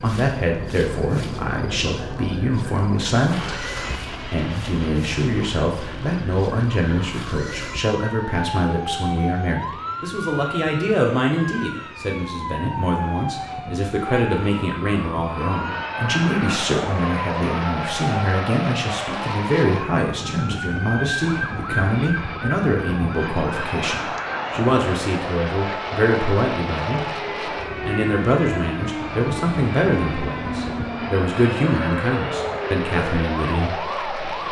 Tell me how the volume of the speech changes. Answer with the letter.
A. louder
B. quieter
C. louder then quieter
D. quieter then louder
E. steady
E.